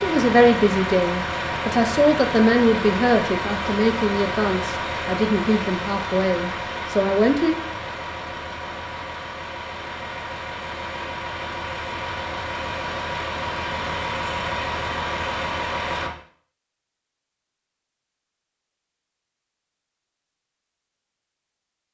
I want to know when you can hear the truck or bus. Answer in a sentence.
You can hear the truck or bus from 0.0 to 16.1 s.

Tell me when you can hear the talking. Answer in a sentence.
The talking can be heard from 0.0 to 7.6 s.